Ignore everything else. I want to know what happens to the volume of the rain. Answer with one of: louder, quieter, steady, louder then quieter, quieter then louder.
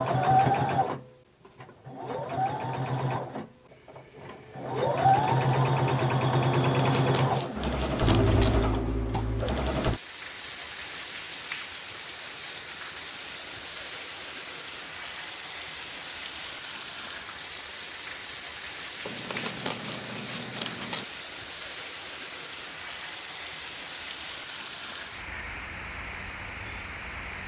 steady.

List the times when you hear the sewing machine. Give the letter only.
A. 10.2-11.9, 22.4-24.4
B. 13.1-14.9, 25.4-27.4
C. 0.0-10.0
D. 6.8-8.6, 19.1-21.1
C.